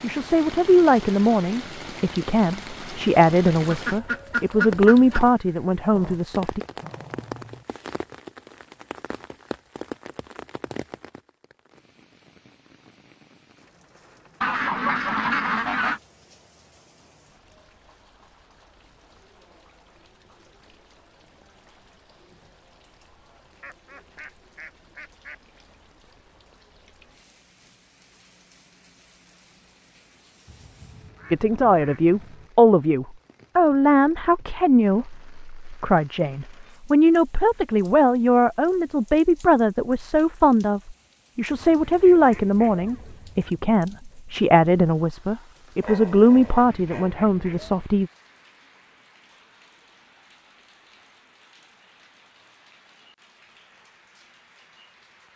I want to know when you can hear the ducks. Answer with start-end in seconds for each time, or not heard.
3.6-5.2, 14.4-16.0, 23.6-25.4, 30.4-32.5, 41.5-43.5, 46.4-47.9.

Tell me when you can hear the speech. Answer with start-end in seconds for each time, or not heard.
0.0-6.6, 31.3-48.1.